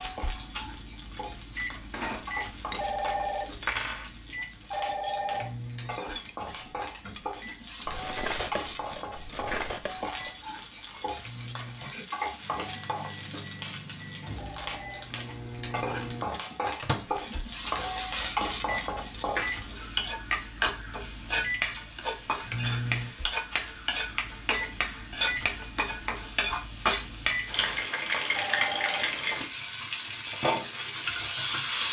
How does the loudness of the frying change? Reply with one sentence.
The loudness of the frying goes up.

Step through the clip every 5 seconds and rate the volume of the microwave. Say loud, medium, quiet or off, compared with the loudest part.
loud, medium, medium, loud, loud, loud, off.